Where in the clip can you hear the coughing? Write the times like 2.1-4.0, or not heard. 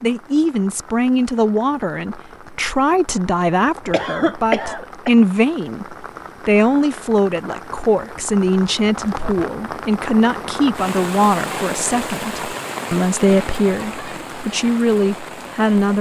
3.9-5.1.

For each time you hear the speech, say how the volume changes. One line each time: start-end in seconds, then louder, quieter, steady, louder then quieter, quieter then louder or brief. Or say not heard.
0.0-15.9 steady.